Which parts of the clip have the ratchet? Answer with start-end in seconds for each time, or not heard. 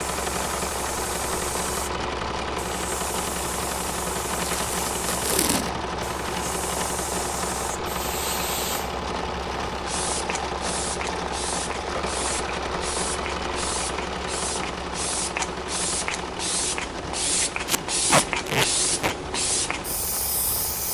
not heard.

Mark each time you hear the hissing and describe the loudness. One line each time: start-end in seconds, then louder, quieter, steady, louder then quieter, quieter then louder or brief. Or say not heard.
0.0-20.8 louder.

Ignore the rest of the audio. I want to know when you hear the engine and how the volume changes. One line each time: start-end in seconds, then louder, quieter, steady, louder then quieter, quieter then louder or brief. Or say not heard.
0.0-20.8 quieter.